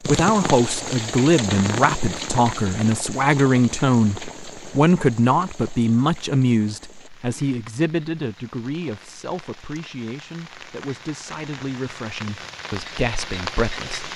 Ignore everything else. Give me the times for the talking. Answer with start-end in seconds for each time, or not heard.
0.0-14.1.